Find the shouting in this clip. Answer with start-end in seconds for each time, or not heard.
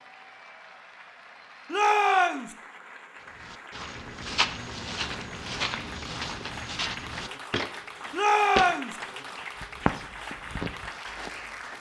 1.7-2.5, 8.1-8.9.